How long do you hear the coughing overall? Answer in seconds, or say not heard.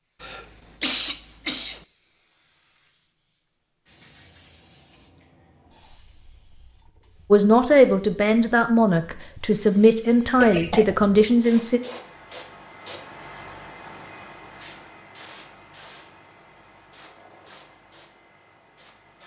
2 s.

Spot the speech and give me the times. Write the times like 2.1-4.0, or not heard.
7.3-11.8.